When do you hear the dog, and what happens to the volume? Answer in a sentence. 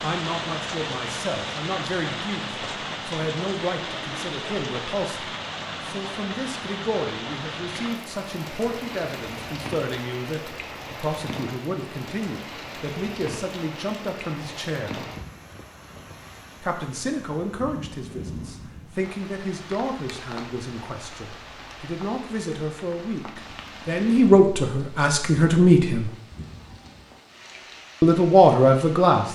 You can't hear the dog here.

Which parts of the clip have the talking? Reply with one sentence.
You can hear the talking from 0.0 to 15.0 s, from 16.6 to 26.1 s and from 28.0 to 29.2 s.